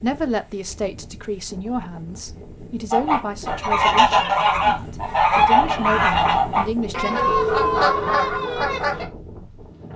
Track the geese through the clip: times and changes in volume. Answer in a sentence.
The geese can be heard from 2.9 to 9.1 s, at a steady volume.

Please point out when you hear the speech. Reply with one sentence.
You can hear the speech from 0.0 to 7.3 s.